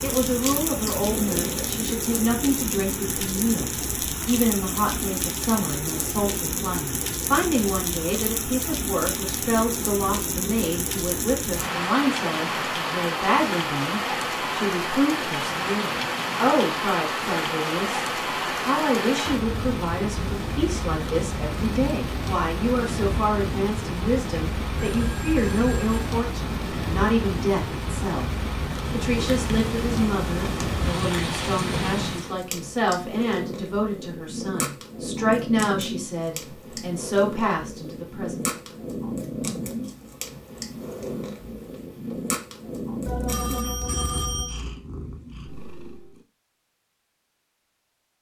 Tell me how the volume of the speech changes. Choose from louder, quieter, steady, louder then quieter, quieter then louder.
steady.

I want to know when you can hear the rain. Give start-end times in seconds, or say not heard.
0.0-32.4.